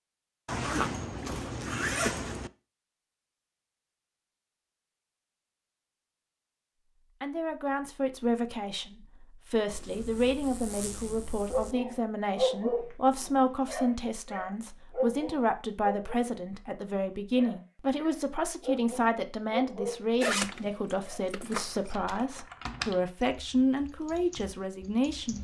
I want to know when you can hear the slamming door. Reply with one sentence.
You can't hear the slamming door here.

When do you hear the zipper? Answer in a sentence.
The zipper can be heard from 0.5 to 2.5 s, from 9.7 to 11.8 s and from 20.2 to 21.9 s.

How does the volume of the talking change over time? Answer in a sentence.
The loudness of the talking stays about the same.